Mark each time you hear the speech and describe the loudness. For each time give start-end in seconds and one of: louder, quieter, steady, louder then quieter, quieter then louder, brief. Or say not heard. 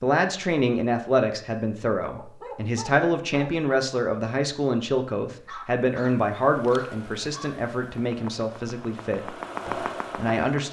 0.0-10.6 quieter.